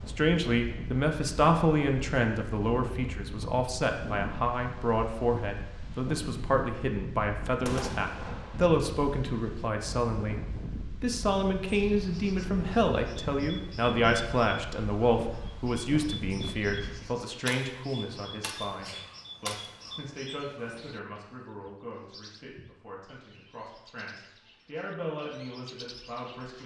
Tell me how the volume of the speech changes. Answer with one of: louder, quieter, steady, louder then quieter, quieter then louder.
quieter.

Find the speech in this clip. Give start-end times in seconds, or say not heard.
0.1-26.6.